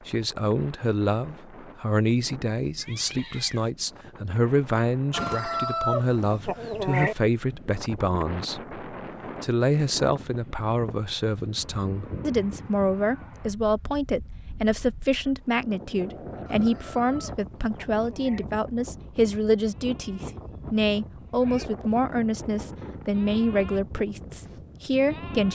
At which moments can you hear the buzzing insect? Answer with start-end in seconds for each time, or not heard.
not heard.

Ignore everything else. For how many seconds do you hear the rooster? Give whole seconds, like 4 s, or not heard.
4 s.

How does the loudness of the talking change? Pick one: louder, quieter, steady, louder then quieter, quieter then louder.
steady.